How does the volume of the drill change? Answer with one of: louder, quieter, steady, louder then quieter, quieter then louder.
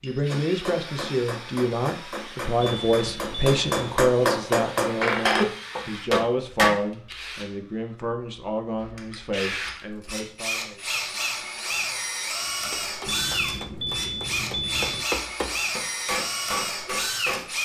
louder.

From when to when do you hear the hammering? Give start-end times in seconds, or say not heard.
0.2-6.8, 12.5-17.5.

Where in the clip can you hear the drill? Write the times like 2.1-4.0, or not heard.
0.0-17.6.